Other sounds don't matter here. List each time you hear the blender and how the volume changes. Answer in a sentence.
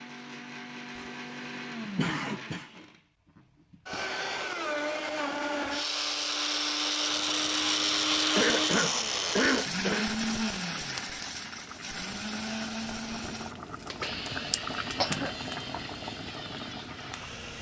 The blender can be heard from 0.0 to 17.5 s, getting louder then quieter.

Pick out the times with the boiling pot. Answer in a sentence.
You can hear the boiling pot from 7.1 to 17.5 s.